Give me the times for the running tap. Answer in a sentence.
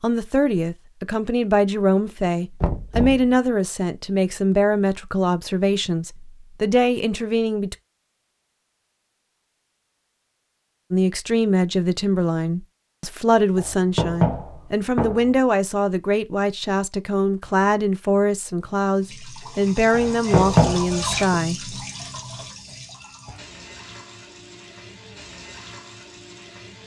You can hear the running tap from 19.0 to 26.8 s.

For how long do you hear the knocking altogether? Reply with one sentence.
The knocking can be heard for 4 seconds in total.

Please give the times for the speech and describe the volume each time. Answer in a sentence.
The speech can be heard from 0.0 to 7.8 s, at a steady volume; and from 10.9 to 21.8 s, at a steady volume.